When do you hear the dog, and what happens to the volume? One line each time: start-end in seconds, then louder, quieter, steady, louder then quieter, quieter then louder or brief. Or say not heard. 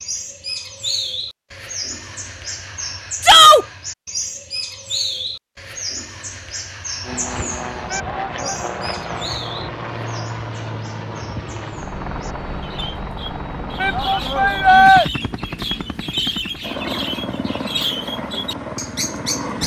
not heard.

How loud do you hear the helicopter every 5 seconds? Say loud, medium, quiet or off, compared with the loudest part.
off, loud, loud, loud.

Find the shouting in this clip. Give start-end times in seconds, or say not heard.
3.2-3.6, 7.9-8.6, 13.8-15.1.